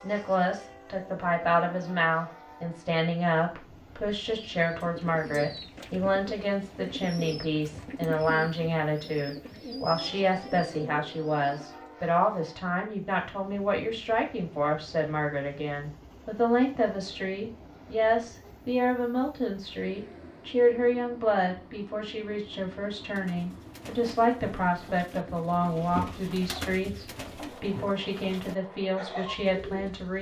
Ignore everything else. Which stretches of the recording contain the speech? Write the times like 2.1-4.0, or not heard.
0.0-30.1.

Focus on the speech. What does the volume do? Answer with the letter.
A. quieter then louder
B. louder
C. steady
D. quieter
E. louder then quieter
C.